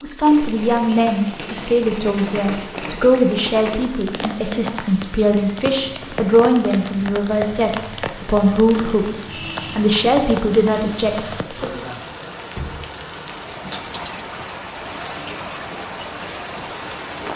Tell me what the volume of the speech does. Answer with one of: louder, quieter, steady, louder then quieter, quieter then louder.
steady.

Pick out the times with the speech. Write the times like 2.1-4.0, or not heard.
0.0-11.8.